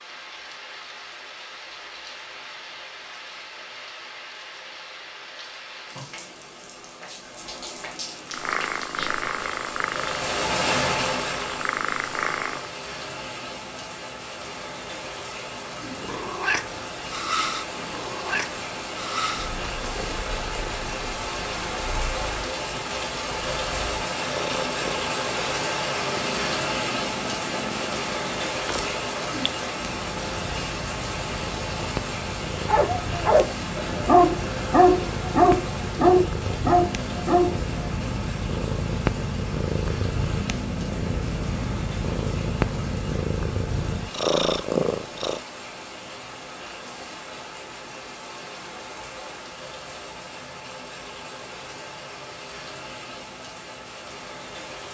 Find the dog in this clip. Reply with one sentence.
You can hear the dog from 32.6 to 38.0 s.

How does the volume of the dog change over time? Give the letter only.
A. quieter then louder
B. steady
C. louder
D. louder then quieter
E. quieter
B.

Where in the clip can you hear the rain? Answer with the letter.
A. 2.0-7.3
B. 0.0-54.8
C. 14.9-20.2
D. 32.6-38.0
B.